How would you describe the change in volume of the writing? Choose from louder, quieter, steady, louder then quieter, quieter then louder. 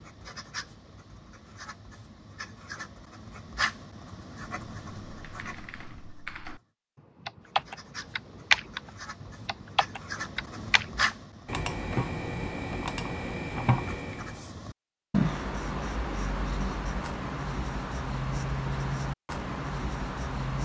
louder.